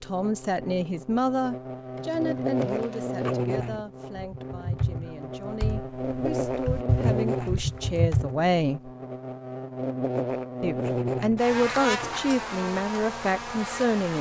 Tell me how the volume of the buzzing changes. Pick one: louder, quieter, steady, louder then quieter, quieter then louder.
steady.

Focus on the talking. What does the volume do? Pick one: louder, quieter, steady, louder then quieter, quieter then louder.
quieter then louder.